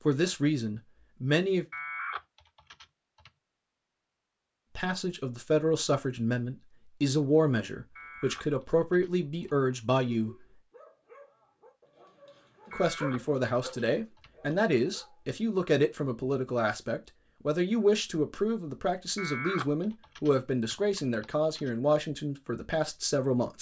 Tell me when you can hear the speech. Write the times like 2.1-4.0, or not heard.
0.1-1.6, 4.8-10.4, 12.7-23.5.